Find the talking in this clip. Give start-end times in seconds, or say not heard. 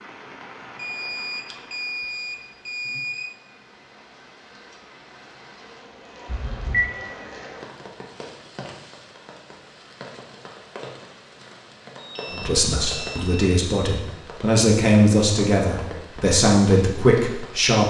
12.3-17.8.